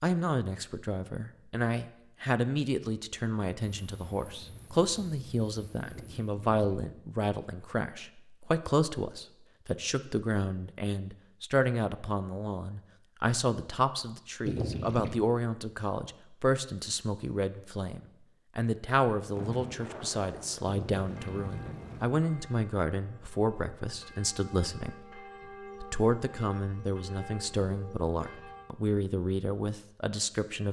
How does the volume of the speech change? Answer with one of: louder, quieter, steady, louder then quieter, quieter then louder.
steady.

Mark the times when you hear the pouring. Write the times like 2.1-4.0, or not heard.
5.8-6.9, 14.4-15.2, 20.6-22.1.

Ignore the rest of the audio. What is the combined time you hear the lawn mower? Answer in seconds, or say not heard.
not heard.